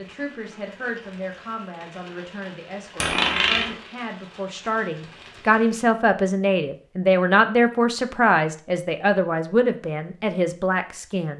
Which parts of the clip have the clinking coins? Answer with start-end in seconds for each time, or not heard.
3.0-3.8.